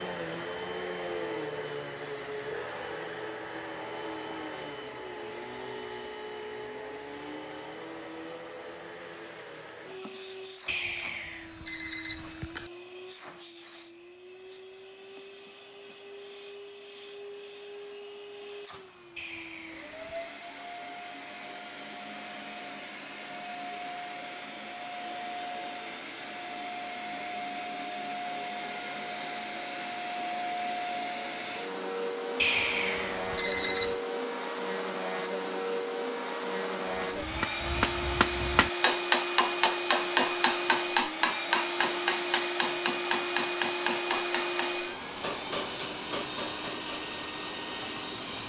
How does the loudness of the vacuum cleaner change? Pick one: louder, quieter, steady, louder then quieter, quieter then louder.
quieter then louder.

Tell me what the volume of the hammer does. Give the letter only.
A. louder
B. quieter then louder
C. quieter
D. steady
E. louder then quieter
C.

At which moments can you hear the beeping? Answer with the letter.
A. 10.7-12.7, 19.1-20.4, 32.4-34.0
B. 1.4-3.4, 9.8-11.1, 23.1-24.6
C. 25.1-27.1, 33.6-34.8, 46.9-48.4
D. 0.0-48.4
A.